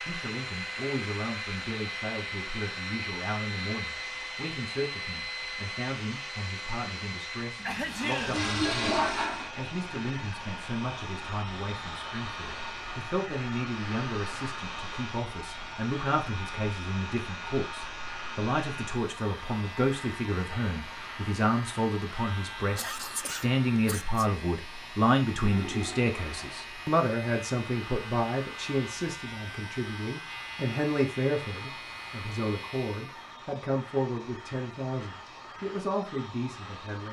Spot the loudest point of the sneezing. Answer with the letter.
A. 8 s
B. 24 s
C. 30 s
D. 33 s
A.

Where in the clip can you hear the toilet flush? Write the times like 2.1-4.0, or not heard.
7.6-9.5, 25.4-26.6.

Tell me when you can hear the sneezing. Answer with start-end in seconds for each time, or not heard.
7.6-8.4, 22.8-24.2.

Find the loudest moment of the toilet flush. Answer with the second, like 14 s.
9 s.